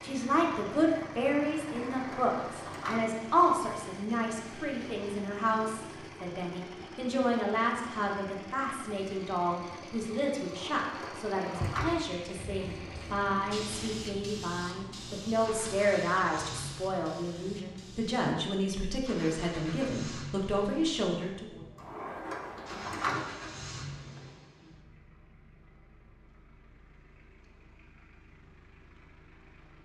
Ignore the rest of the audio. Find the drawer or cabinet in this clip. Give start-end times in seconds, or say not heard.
1.6-3.0, 10.5-11.9, 21.8-23.2.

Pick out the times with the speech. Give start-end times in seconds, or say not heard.
0.0-21.6.